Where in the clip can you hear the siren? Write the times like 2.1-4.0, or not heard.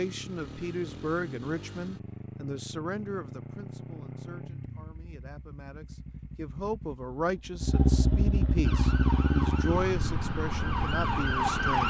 8.6-11.8.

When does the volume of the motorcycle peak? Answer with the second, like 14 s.
8 s.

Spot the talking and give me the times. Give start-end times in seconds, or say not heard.
0.0-11.8.